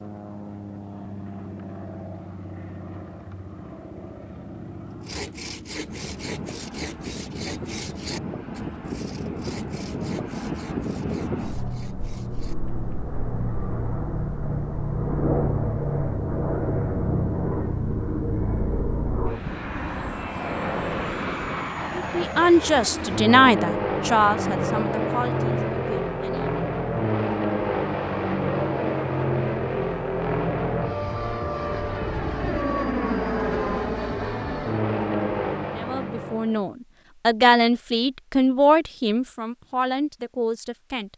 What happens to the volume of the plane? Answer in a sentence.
The volume of the plane goes up.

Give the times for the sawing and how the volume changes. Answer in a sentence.
You can hear the sawing from 4.9 to 12.6 s, getting quieter.